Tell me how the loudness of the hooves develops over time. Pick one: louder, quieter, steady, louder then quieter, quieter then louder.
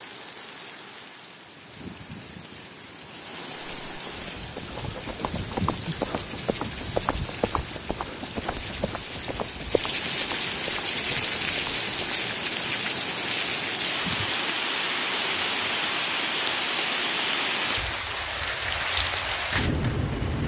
quieter.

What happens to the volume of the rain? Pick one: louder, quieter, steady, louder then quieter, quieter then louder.
louder.